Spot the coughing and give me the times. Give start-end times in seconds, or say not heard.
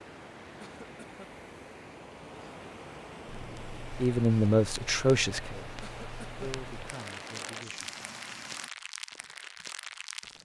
0.6-1.3, 5.8-6.5.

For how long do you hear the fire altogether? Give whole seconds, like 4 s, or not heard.
7 s.